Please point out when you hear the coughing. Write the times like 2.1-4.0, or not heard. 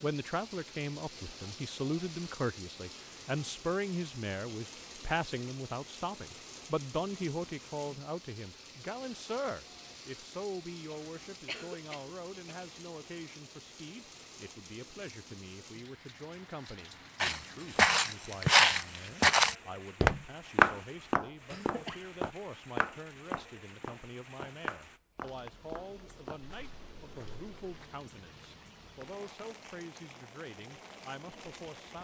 10.9-12.6, 21.5-22.1.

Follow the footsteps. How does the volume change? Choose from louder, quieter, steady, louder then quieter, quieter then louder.
quieter.